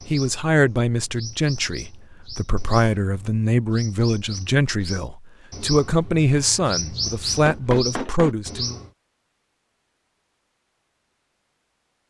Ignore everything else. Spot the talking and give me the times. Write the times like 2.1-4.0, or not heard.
0.1-8.8.